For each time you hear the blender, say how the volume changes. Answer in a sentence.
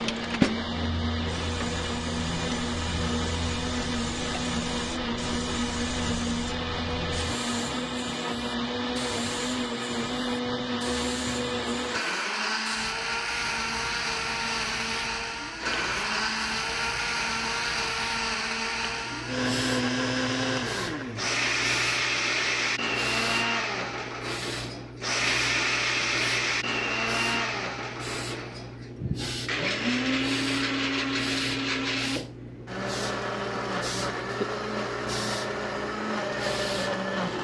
The blender can be heard from 0.0 to 37.3 s, at a steady volume.